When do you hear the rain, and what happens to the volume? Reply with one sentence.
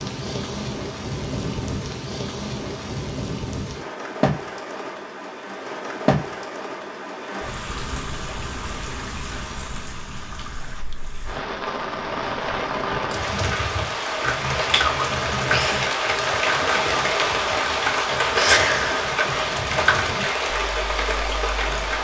The rain can be heard from 0.0 to 21.9 s, getting louder.